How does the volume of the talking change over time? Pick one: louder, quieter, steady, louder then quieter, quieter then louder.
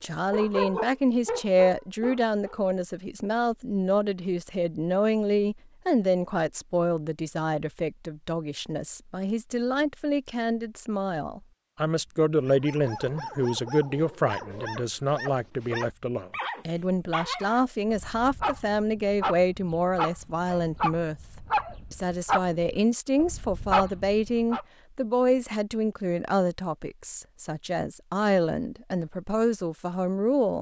steady.